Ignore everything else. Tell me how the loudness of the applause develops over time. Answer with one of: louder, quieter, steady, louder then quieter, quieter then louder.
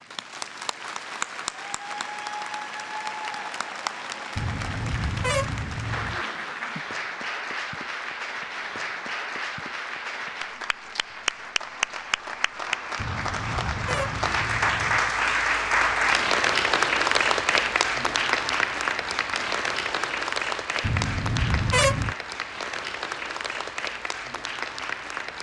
louder then quieter.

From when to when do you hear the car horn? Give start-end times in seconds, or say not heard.
4.3-6.2, 12.9-15.0, 20.8-22.1.